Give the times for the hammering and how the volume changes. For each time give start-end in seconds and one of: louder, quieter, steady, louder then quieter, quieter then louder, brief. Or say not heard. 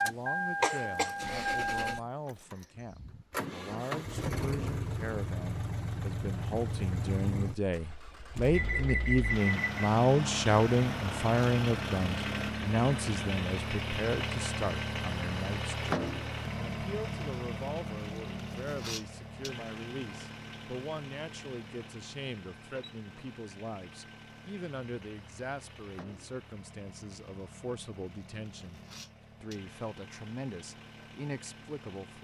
not heard.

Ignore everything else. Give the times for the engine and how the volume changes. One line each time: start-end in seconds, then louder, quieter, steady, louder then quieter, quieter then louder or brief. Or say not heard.
0.0-32.1 quieter.